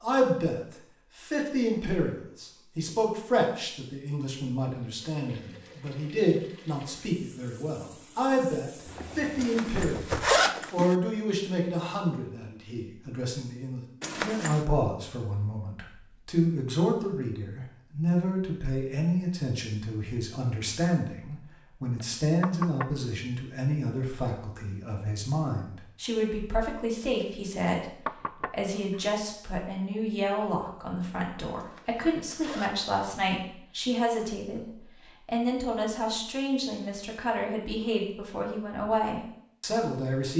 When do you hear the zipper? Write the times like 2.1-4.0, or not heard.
9.4-10.9, 14.0-14.7, 31.6-32.9.